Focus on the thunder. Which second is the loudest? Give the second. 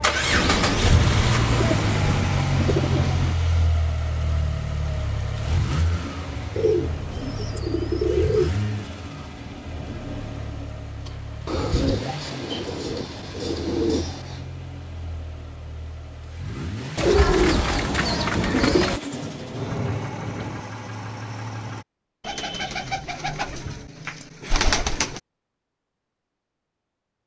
1 s.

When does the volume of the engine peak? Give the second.
1 s.